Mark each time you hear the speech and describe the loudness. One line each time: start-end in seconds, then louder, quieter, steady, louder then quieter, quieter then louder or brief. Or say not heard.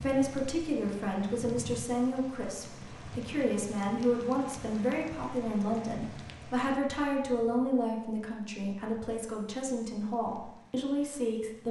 0.0-11.6 steady.